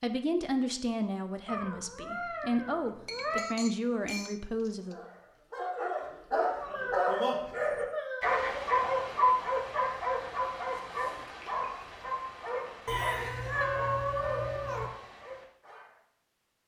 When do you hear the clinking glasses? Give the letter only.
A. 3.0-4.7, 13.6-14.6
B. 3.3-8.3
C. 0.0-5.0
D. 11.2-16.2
A.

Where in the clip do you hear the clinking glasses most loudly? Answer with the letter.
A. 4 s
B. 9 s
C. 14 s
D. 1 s
C.